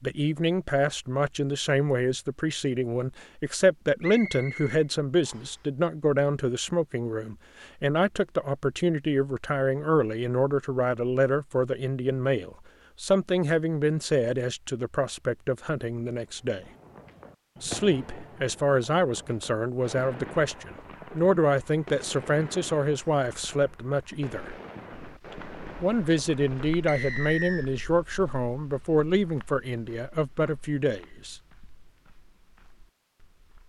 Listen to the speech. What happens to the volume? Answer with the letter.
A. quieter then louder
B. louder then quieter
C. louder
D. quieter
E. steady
E.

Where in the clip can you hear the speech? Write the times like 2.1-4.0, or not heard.
0.0-16.6, 17.6-24.5, 25.8-31.4.